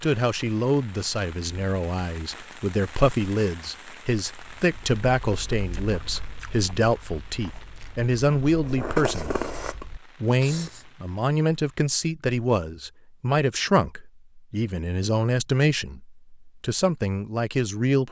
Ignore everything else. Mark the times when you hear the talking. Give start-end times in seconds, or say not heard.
0.0-18.0.